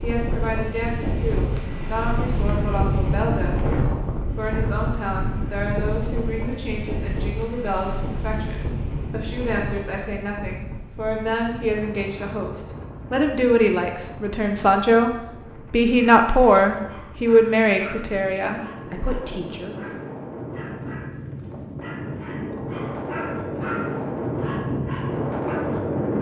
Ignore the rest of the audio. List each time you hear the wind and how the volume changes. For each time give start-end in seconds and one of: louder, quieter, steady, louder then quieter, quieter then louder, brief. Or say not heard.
0.0-26.1 quieter then louder.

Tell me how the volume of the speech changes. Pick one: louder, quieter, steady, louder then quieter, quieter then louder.
louder.